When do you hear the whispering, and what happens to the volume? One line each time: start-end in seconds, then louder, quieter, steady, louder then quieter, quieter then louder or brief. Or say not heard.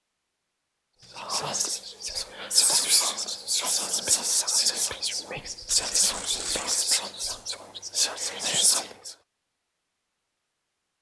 1.1-9.2 steady.